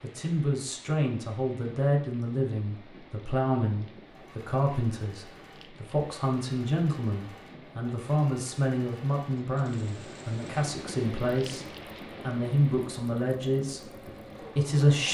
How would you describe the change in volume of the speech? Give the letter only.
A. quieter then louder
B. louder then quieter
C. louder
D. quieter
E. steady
E.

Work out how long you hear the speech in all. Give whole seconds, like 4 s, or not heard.
15 s.